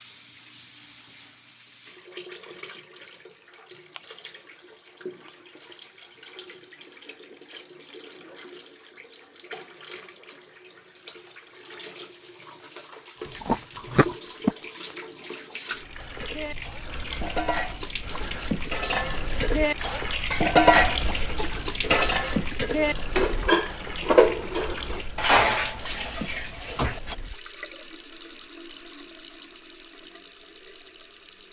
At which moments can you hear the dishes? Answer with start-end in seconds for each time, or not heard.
16.0-27.1.